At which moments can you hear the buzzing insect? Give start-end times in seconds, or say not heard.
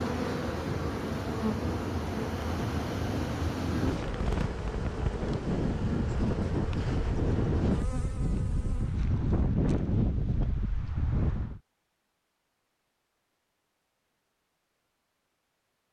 0.0-9.1.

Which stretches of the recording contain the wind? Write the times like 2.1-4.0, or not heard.
0.0-11.6.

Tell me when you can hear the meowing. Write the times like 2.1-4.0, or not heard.
not heard.